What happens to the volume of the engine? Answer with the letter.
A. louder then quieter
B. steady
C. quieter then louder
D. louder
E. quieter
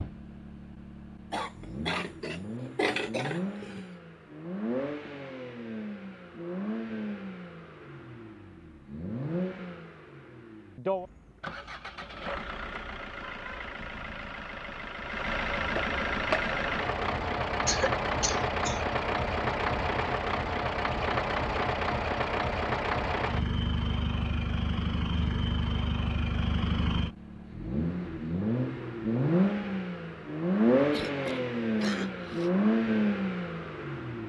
D.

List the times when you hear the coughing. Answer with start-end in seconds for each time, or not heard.
1.3-3.9, 17.6-18.8, 30.9-32.5.